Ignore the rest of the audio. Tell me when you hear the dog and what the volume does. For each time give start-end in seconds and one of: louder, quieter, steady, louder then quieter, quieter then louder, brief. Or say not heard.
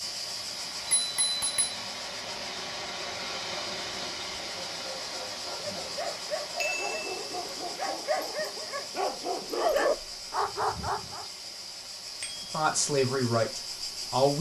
4.7-11.2 louder.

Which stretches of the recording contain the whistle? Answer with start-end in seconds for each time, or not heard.
not heard.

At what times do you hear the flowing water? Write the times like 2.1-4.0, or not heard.
0.0-14.3.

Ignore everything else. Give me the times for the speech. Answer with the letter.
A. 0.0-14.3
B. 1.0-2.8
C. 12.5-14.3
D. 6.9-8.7
C.